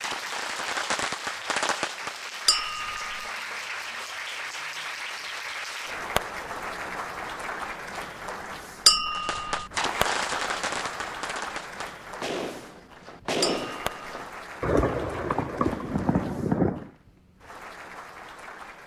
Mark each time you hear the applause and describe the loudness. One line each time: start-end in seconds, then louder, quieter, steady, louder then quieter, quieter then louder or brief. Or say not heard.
0.0-18.8 quieter.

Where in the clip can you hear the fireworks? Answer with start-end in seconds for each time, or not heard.
0.0-2.6, 9.1-16.9.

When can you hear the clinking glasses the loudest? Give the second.
9 s.